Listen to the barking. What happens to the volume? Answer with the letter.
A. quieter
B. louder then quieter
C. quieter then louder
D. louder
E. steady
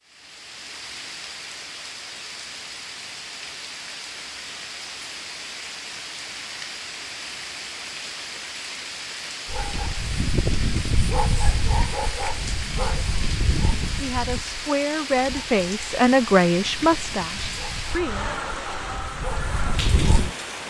C.